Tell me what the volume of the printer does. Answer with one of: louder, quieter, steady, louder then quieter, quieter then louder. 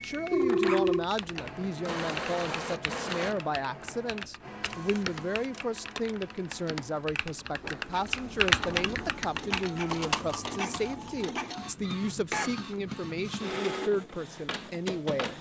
quieter then louder.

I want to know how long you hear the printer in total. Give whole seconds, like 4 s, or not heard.
15 s.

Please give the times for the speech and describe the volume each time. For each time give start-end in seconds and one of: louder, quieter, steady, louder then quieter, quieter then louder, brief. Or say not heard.
0.0-15.3 steady.